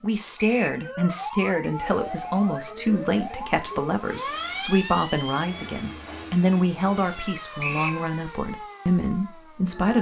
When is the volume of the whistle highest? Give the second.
8 s.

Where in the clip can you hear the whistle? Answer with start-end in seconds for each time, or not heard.
0.3-0.8, 7.6-8.0.